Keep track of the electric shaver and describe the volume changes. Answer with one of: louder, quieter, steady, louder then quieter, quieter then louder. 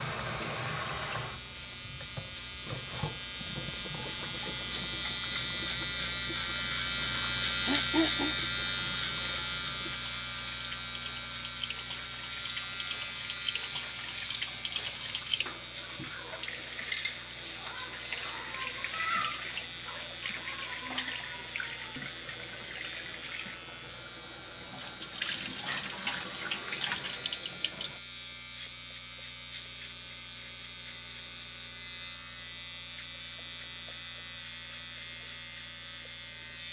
quieter.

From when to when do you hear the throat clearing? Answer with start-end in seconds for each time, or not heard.
7.6-8.3, 20.9-21.4.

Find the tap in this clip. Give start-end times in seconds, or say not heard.
0.0-28.0.